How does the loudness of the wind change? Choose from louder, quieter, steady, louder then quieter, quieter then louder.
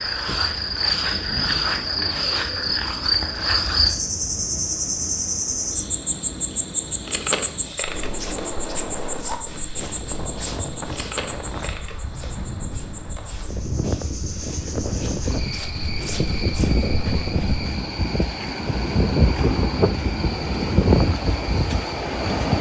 louder.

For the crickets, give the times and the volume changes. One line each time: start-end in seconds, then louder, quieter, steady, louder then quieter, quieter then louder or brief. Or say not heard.
0.0-22.5 quieter.